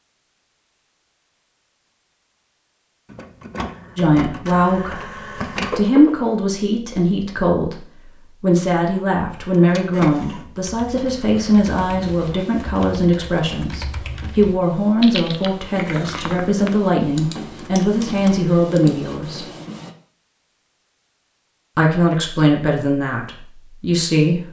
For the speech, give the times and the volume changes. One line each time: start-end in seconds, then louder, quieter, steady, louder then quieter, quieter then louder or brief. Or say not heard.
4.0-19.5 steady
21.8-24.4 brief.